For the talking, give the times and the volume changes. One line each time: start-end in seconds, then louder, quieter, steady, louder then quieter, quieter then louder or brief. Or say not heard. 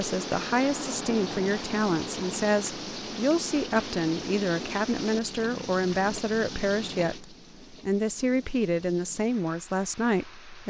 0.0-10.6 steady.